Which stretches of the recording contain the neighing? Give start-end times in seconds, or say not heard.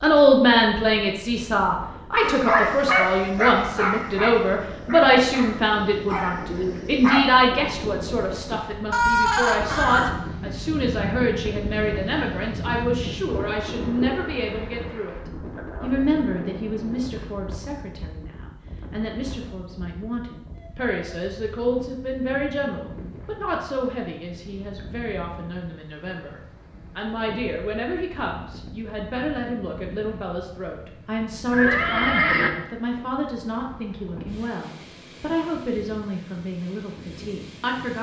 8.9-10.2, 31.5-32.5.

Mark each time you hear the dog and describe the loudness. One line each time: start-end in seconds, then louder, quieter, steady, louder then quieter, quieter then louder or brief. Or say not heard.
2.1-7.2 quieter then louder.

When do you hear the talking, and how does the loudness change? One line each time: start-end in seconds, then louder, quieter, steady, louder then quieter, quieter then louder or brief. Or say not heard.
0.0-37.9 quieter.